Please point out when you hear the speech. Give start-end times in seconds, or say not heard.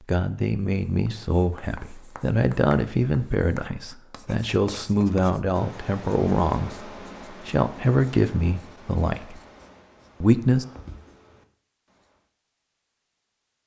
0.1-9.3, 10.2-10.7.